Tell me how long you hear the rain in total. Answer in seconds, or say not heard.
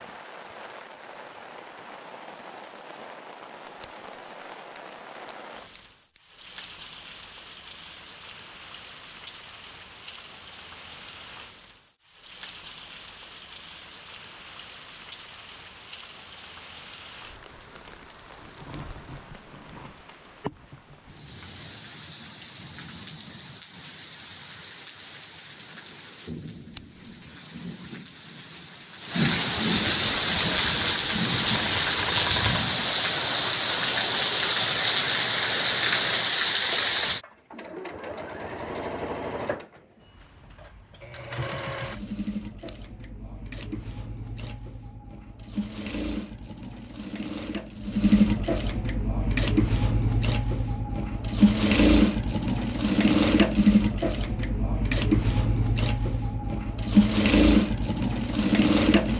37 s.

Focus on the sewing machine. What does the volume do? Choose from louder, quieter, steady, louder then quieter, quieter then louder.
louder.